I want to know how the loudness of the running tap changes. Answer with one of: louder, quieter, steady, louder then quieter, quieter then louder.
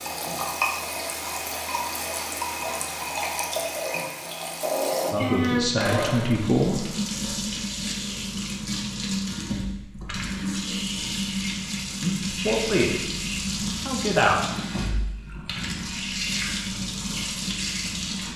steady.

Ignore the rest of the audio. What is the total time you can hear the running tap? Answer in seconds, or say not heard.
18 s.